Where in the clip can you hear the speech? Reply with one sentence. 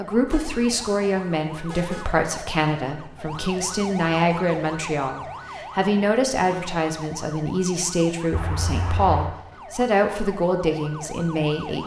You can hear the speech from 0.0 to 11.8 s.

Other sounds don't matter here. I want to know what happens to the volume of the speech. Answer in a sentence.
The loudness of the speech stays about the same.